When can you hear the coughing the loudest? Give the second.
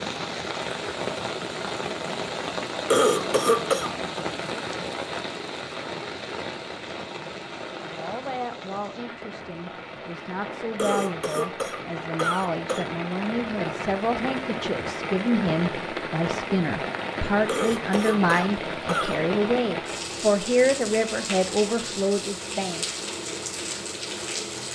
3 s.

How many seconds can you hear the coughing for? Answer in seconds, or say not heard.
5 s.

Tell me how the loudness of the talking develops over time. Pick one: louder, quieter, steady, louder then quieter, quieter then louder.
louder.